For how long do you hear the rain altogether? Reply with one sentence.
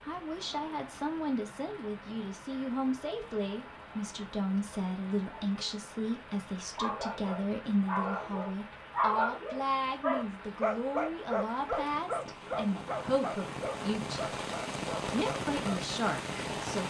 The rain can be heard for 17 seconds in total.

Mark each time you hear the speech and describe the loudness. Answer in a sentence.
The speech can be heard from 0.0 to 14.2 s, at a steady volume; and briefly from 15.1 to 16.8 s.